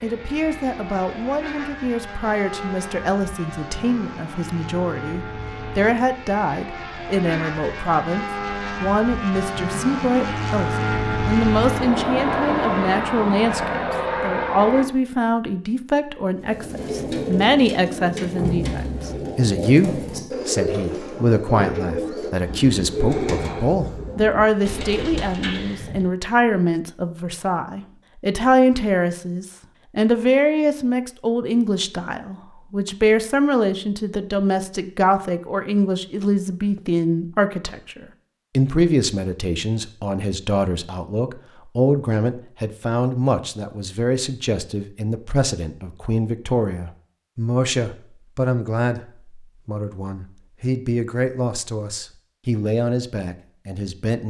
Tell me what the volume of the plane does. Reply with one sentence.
The volume of the plane goes up.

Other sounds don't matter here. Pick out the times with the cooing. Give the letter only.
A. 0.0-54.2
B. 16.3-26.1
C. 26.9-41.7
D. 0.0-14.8
B.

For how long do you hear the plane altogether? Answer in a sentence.
The plane can be heard for 15 seconds in total.